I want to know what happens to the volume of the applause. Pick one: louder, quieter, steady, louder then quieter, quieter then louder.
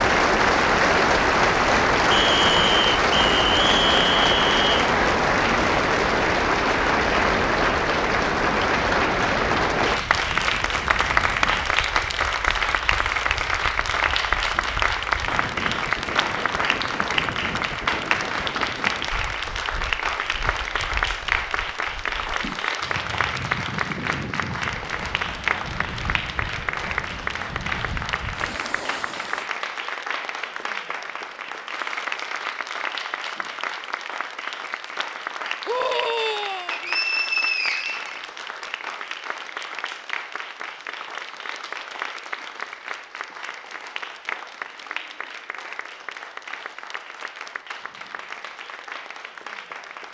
quieter.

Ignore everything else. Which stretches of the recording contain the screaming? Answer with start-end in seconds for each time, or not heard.
35.6-36.8.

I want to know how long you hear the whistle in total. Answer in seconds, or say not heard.
5 s.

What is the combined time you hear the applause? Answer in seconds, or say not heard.
50 s.